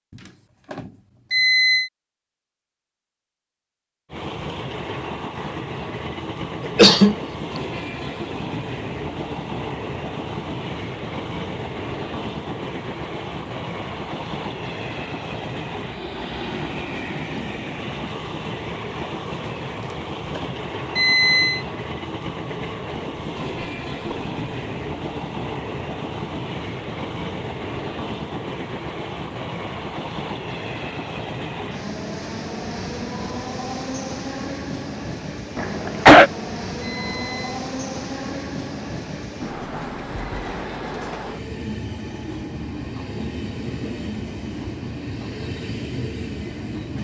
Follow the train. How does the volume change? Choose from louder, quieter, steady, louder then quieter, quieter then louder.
steady.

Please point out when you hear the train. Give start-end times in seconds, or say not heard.
4.1-46.9.